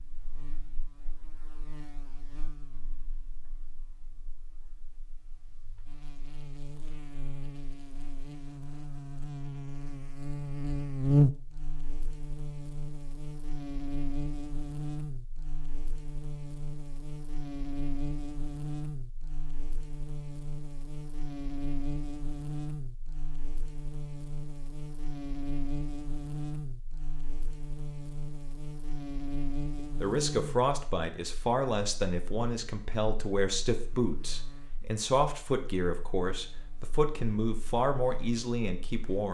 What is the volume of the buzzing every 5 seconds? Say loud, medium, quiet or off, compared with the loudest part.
quiet, quiet, loud, medium, medium, medium, medium, quiet.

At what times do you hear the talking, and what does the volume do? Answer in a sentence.
The talking can be heard from 29.8 to 39.3 s, at a steady volume.